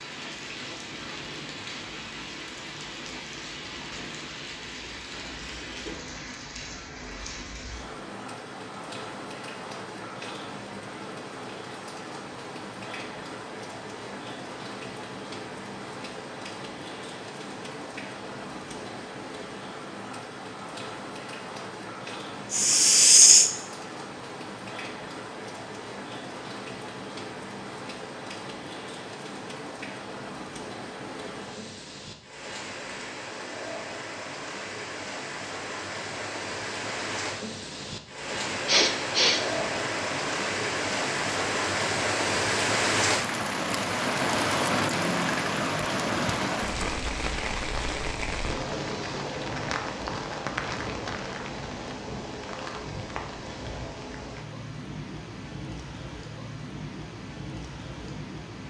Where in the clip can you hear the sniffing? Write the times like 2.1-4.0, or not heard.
22.5-23.5, 38.6-39.5.